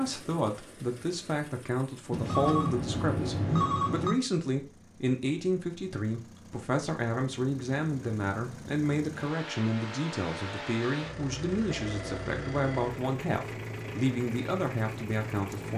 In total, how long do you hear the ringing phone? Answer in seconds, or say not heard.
3 s.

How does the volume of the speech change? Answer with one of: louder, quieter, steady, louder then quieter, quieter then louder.
steady.